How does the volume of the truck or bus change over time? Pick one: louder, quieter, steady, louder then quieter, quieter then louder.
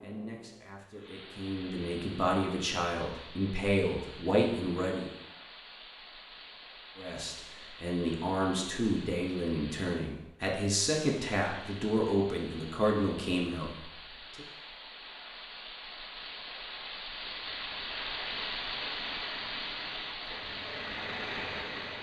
louder.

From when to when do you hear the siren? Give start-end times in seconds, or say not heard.
not heard.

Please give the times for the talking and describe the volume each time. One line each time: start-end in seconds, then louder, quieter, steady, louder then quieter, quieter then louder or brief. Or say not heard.
0.0-5.1 louder
7.0-14.4 steady.